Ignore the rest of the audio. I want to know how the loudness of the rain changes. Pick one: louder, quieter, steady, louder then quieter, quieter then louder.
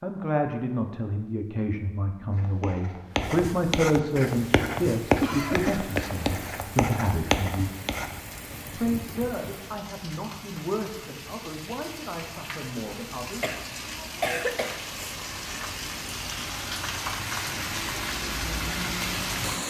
louder.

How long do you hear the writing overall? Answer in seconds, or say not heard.
6 s.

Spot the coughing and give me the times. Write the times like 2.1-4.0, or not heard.
5.2-6.0, 13.4-15.2.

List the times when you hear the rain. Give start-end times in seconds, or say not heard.
4.2-19.6.